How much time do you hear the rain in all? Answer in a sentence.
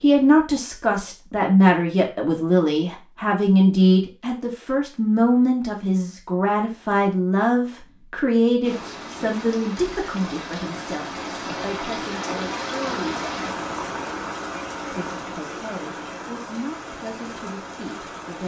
The rain can be heard for 10 seconds in total.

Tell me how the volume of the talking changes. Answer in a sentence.
The loudness of the talking goes down.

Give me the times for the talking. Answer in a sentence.
You can hear the talking from 0.0 to 13.6 s and from 14.9 to 18.4 s.